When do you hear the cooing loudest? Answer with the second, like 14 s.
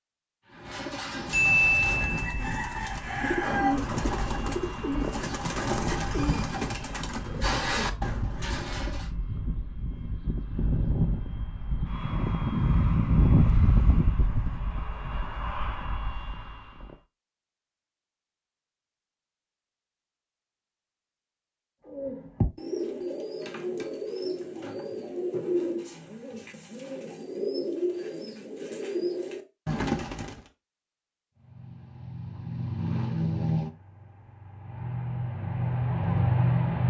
2 s.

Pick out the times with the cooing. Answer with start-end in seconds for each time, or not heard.
0.5-9.1, 21.9-30.5.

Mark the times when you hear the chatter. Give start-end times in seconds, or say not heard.
not heard.